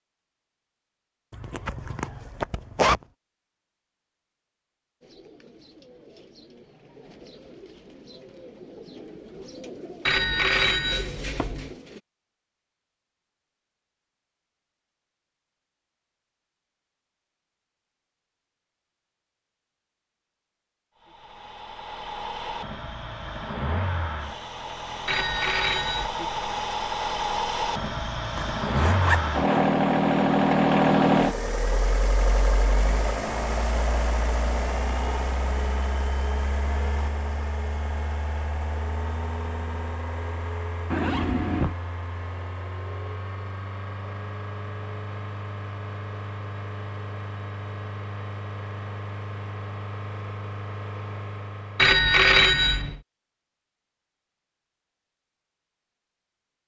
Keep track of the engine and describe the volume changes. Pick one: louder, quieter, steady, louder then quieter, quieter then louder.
louder then quieter.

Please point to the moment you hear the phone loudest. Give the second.
52 s.